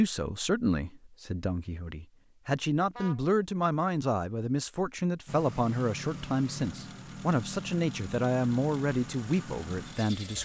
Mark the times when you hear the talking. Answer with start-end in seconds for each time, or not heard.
0.0-10.4.